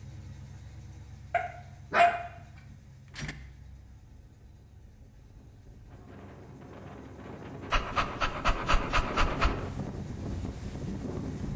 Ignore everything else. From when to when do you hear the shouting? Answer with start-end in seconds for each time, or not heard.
not heard.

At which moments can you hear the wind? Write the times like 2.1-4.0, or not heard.
3.1-11.5.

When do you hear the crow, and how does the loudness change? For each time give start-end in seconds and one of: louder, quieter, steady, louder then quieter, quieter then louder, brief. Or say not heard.
not heard.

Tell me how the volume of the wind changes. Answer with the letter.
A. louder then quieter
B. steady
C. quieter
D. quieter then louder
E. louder
E.